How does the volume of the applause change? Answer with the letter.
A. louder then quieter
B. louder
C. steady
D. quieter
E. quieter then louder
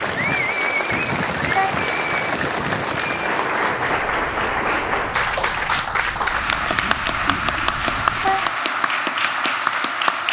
C.